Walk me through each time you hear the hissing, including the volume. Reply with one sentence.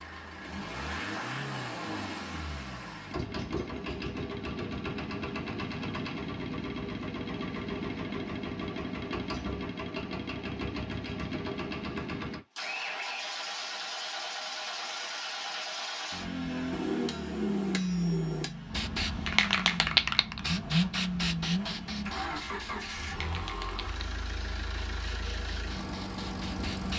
The hissing can be heard from 18.7 to 26.9 s, getting quieter.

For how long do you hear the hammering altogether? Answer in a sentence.
You can hear the hammering for 2 seconds altogether.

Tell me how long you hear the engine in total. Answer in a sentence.
The engine can be heard for 27 seconds in total.